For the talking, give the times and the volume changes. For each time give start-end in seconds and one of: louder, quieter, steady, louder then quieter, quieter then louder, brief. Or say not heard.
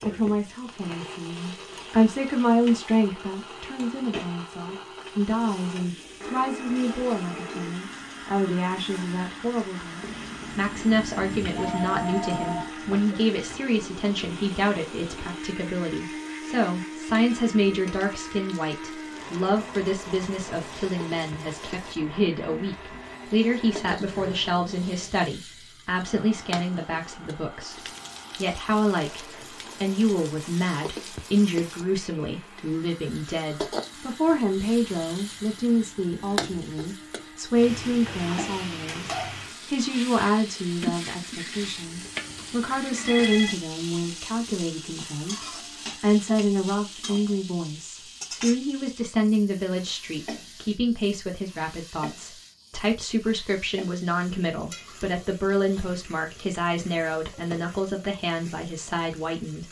0.0-59.6 steady.